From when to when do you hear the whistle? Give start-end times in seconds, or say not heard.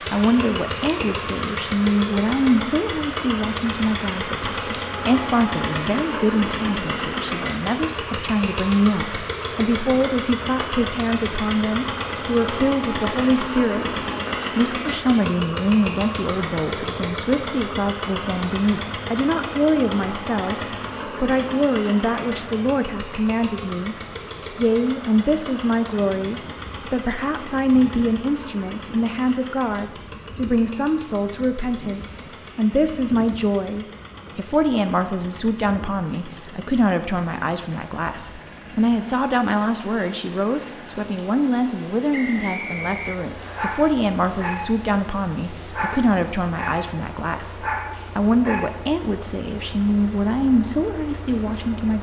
42.1-43.6.